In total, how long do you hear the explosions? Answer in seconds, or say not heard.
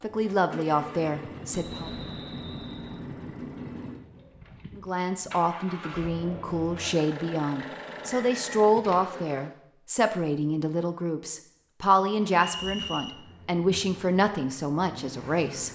3 s.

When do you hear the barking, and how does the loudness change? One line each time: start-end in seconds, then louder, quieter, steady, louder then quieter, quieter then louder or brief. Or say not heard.
not heard.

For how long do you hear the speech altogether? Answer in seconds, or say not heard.
13 s.